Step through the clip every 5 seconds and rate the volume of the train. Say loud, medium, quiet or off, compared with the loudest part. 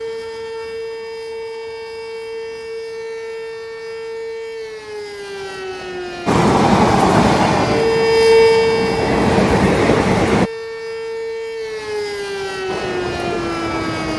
off, loud, medium.